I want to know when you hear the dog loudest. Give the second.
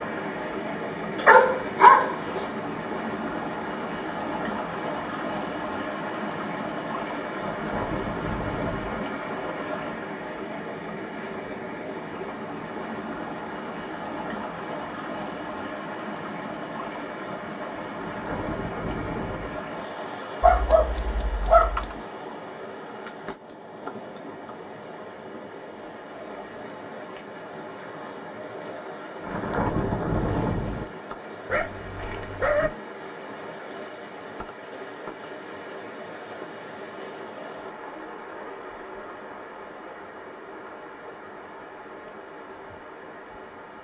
2 s.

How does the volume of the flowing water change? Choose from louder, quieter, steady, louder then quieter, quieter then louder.
quieter.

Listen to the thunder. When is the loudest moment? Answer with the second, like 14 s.
30 s.